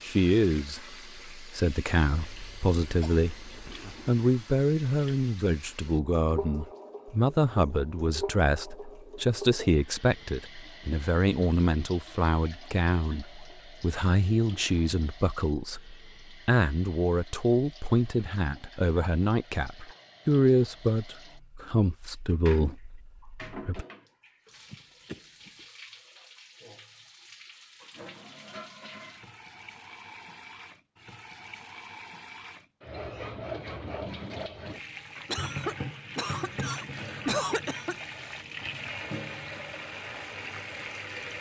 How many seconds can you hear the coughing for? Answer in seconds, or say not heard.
6 s.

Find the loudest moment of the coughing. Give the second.
37 s.